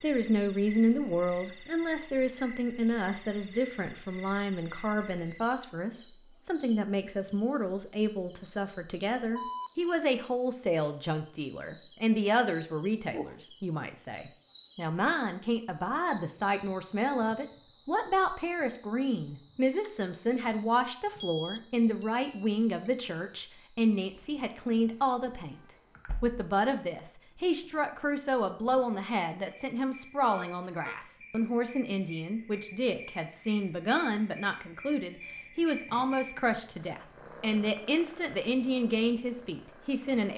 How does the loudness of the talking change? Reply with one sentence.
The loudness of the talking stays about the same.